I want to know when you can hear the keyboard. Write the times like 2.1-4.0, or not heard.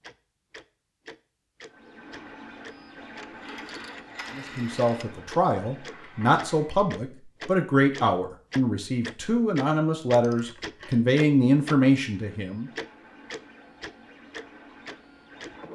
not heard.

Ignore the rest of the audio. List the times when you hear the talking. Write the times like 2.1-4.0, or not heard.
4.3-12.7.